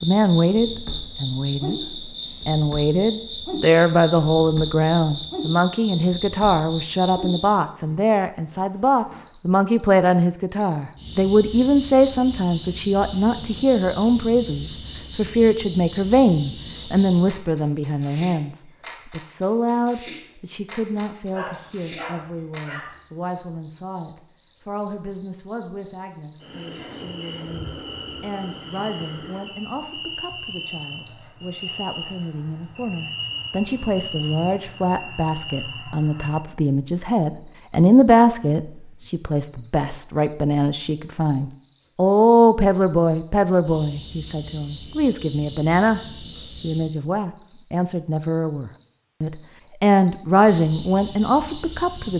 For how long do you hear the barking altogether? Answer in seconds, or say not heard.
2 s.